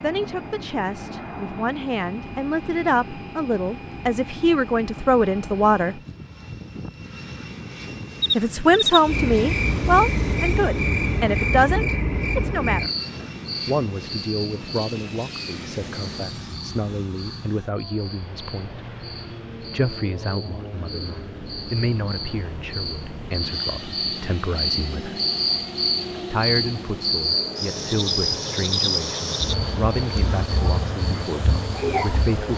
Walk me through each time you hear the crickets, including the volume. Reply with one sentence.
The crickets can be heard from 8.2 to 32.5 s, getting quieter then louder.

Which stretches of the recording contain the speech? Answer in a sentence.
The speech can be heard from 0.0 to 6.0 s, from 8.3 to 12.9 s, from 13.7 to 18.8 s, from 19.7 to 25.2 s and from 26.3 to 32.5 s.